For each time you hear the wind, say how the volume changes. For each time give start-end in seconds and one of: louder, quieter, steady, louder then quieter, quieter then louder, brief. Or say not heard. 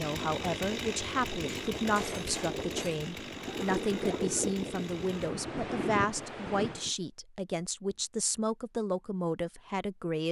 0.2-6.9 louder.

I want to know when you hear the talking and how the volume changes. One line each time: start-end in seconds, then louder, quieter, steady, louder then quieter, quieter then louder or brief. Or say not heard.
0.0-10.2 steady.